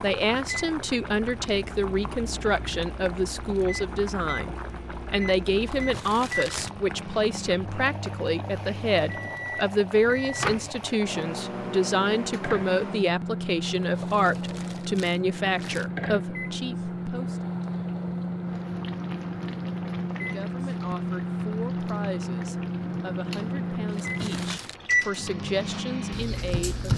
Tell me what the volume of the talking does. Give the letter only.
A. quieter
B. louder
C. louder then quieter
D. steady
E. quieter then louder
A.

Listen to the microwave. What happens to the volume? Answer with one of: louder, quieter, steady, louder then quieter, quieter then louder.
louder.